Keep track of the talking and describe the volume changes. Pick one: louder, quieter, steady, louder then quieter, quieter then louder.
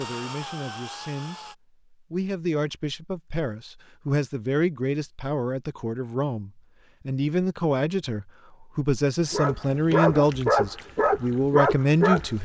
louder.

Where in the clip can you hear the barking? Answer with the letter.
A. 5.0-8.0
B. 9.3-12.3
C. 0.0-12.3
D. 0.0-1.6
B.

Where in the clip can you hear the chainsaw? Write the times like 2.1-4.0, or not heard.
0.0-1.6.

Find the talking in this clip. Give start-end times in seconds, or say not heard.
0.0-12.3.